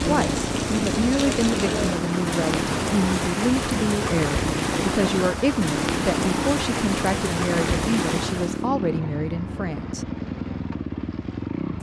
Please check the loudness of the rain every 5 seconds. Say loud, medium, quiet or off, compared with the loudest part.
loud, loud, off.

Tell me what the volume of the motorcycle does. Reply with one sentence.
The loudness of the motorcycle stays about the same.